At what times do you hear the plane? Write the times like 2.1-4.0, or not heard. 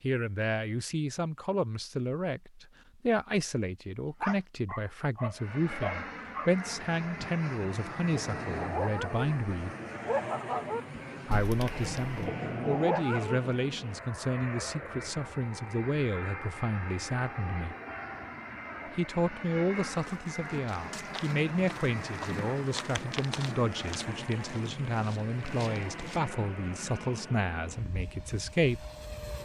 5.3-29.4.